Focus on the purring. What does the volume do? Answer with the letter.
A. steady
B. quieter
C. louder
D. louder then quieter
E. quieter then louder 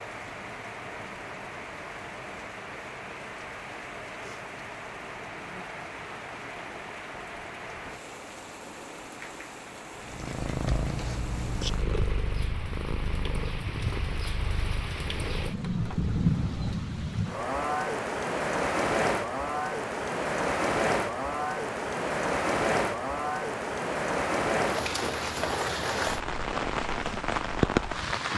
B.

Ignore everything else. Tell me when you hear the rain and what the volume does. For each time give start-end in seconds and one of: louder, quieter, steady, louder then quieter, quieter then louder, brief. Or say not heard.
0.0-28.3 louder.